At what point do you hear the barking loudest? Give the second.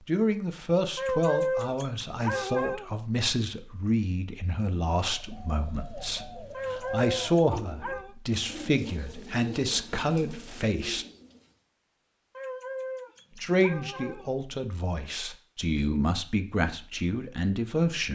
1 s.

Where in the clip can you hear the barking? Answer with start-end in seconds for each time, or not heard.
0.9-2.9, 6.5-8.2, 12.3-14.3.